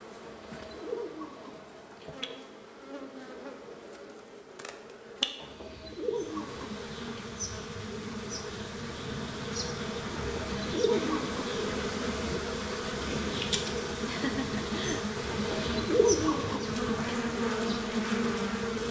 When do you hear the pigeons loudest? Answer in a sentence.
The loudest moment of the pigeons is at 16 seconds.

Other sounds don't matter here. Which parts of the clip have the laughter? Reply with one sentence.
The laughter can be heard from 14.1 to 15.1 s.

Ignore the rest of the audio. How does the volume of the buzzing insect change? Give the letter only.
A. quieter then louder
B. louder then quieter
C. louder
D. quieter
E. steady
C.